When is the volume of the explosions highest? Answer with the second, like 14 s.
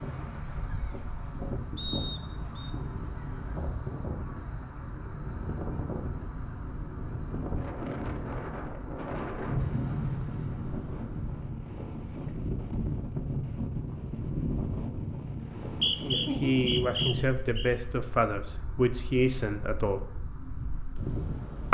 10 s.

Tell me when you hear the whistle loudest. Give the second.
16 s.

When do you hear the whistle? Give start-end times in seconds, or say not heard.
1.8-2.7, 15.4-17.7.